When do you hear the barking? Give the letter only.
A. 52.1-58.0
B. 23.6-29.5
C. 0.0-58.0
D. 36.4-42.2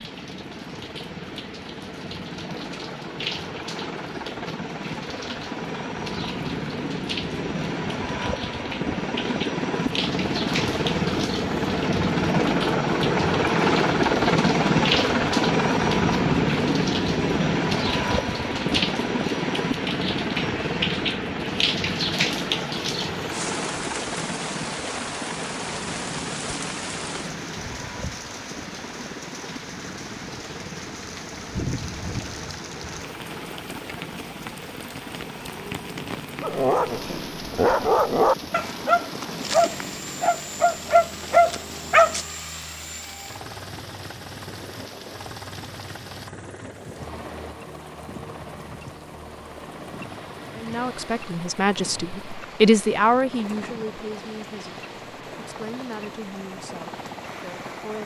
D.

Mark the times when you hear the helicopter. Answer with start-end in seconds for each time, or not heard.
0.0-58.0.